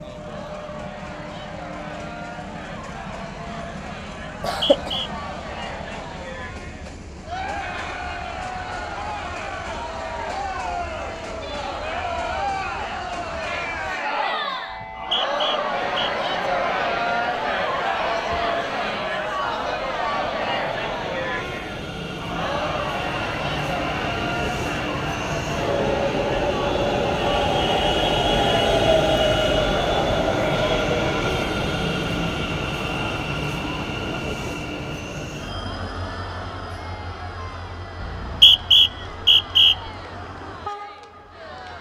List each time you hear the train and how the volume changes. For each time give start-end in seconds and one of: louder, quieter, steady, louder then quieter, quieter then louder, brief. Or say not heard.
0.0-41.7 louder then quieter.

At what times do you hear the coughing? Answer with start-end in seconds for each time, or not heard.
4.4-5.1.